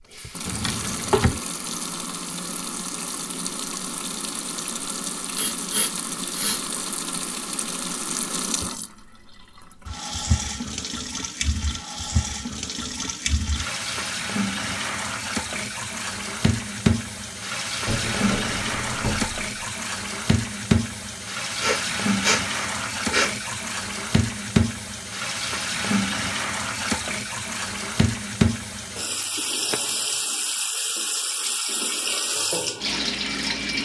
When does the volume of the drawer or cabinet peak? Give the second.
1 s.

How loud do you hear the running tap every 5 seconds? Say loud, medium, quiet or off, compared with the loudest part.
medium, medium, loud, loud, loud, loud, loud.